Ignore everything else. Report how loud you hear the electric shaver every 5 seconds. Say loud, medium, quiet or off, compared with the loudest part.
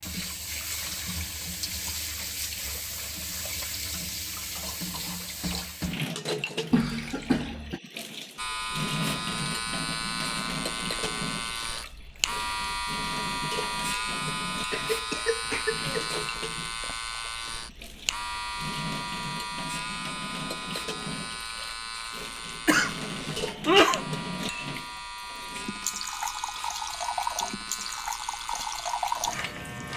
off, loud, loud, loud, medium, medium.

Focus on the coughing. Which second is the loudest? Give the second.
24 s.